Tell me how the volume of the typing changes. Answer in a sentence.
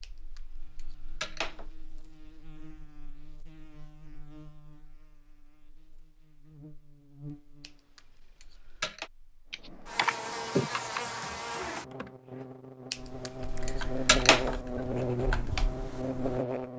The loudness of the typing goes down, then up.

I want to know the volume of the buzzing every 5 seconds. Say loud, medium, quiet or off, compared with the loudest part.
quiet, quiet, loud, loud.